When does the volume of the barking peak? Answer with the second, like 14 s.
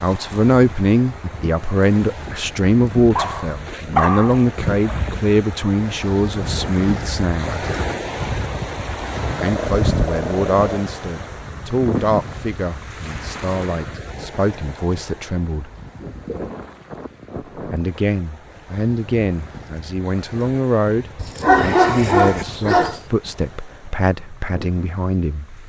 22 s.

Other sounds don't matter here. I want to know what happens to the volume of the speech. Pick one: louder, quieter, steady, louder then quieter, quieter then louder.
quieter.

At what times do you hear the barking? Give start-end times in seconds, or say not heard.
3.1-4.5, 9.4-10.8, 21.1-23.0.